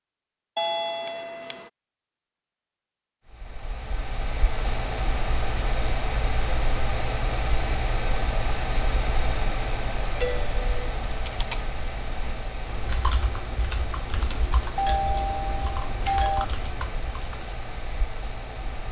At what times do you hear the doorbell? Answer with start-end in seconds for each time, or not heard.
0.6-1.7, 10.2-10.7, 14.8-16.4.